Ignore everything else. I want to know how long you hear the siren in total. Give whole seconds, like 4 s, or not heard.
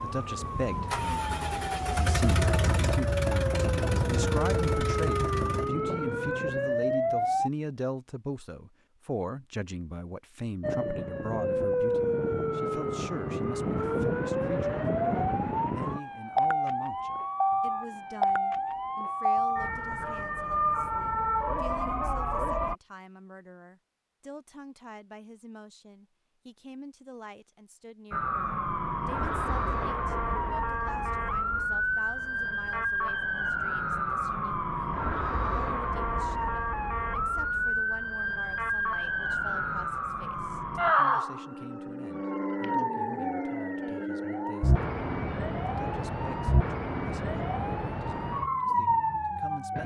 41 s.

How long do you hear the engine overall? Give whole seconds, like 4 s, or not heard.
6 s.